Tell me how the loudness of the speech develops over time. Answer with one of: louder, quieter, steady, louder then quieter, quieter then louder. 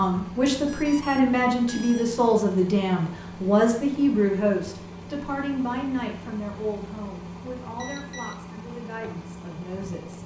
quieter.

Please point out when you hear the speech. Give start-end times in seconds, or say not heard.
0.0-10.2.